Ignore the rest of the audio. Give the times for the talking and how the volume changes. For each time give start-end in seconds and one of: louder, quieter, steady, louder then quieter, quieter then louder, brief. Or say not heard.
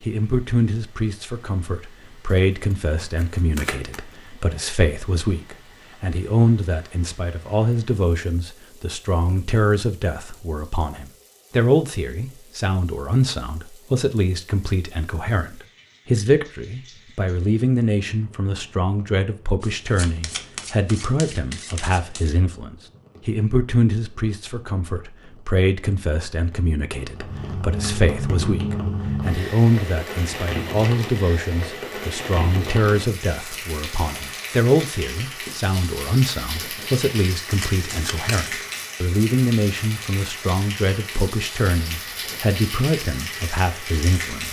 0.0-44.4 steady.